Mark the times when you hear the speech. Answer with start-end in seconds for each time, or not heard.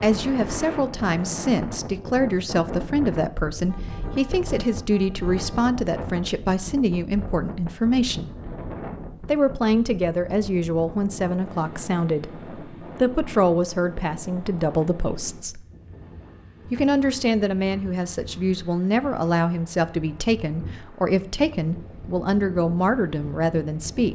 0.0-8.3, 9.2-15.6, 16.7-24.1.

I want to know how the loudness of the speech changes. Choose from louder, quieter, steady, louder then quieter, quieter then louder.
steady.